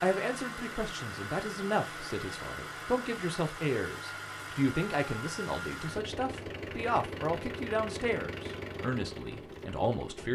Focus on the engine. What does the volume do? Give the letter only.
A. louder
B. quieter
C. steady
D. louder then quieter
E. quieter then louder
C.